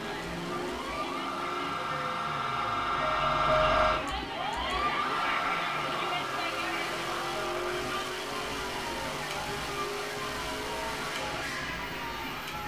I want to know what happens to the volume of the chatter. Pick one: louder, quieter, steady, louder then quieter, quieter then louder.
louder then quieter.